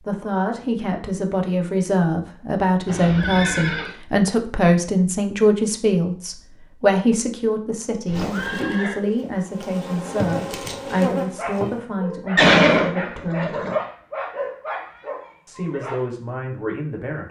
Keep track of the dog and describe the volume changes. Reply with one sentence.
The volume of the dog goes up, then down.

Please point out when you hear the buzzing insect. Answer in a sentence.
The buzzing insect can be heard from 8.1 to 11.8 s.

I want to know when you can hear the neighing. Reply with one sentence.
The neighing can be heard from 2.9 to 4.0 s, from 8.1 to 8.9 s and from 12.3 to 13.8 s.